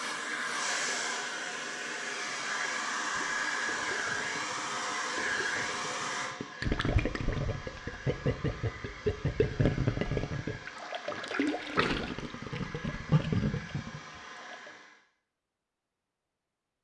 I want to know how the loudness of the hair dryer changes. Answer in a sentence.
The volume of the hair dryer goes down.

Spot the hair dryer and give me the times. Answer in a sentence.
The hair dryer can be heard from 0.0 to 15.0 s.